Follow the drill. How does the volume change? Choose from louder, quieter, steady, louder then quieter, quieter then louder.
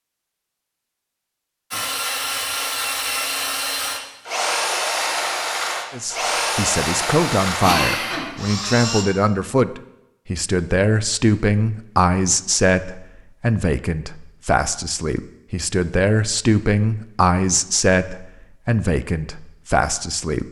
steady.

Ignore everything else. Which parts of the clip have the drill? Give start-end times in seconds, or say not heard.
1.7-9.1.